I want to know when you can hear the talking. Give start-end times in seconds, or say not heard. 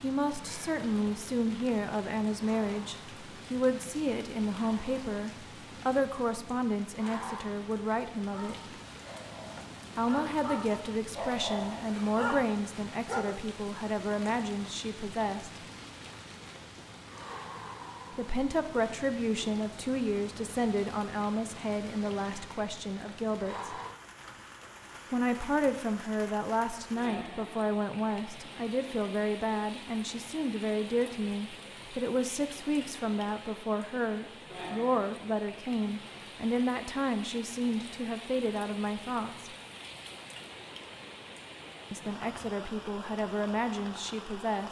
0.0-8.6, 9.9-15.6, 18.1-23.8, 25.1-39.5, 41.9-44.6.